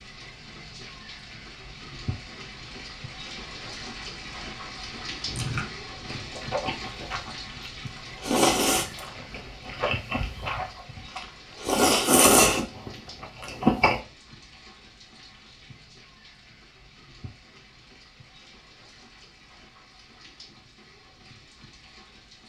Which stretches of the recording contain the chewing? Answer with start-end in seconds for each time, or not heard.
5.2-14.0.